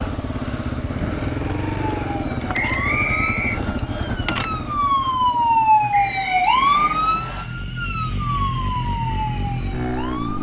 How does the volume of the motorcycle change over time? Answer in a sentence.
The volume of the motorcycle goes down, then up.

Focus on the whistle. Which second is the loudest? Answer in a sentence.
The loudest moment of the whistle is at 3 seconds.